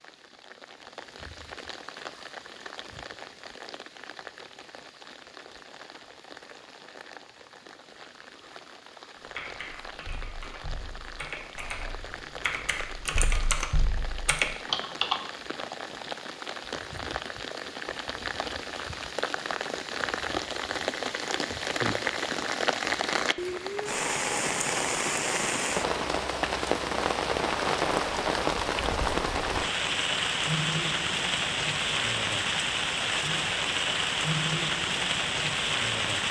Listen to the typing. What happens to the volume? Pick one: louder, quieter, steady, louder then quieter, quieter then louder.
louder.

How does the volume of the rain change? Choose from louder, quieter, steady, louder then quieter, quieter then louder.
louder.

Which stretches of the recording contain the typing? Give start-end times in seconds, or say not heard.
9.2-15.2.